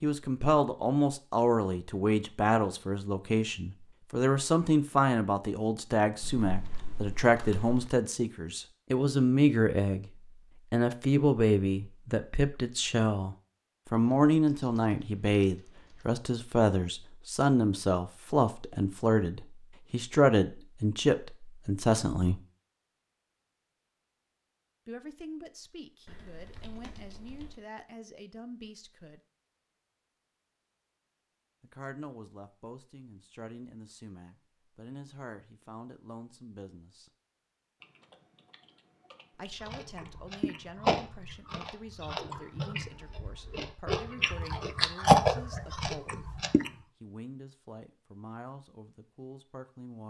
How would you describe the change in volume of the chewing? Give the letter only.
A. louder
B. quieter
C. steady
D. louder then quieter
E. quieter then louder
E.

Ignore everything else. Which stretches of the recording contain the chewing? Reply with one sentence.
The chewing can be heard from 39.6 to 46.7 s.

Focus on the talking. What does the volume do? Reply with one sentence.
The volume of the talking goes down.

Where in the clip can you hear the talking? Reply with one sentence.
You can hear the talking from 0.0 to 10.1 s, from 10.7 to 22.4 s, from 24.9 to 29.2 s, from 31.6 to 37.1 s and from 39.3 to 50.0 s.